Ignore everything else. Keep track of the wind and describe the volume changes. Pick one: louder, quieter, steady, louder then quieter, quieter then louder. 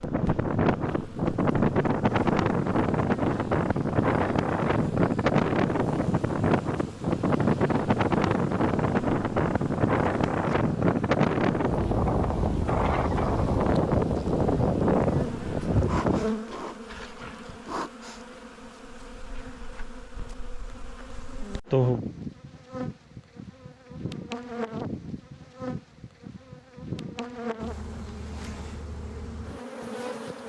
steady.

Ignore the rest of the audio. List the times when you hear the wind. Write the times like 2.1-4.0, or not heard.
0.0-16.2.